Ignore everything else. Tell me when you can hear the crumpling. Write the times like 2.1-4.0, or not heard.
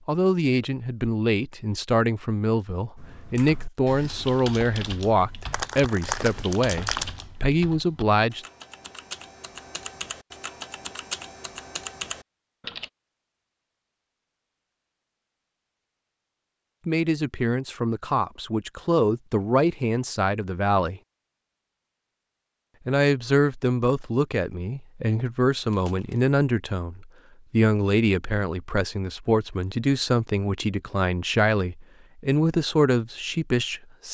5.5-7.2, 25.6-26.3.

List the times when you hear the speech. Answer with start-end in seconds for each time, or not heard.
0.1-8.4, 16.9-21.0, 22.9-34.0.